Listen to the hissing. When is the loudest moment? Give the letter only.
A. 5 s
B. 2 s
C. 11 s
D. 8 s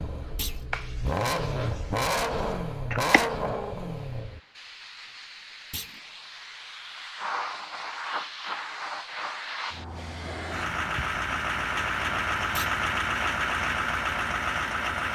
D.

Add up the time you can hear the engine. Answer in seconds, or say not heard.
9 s.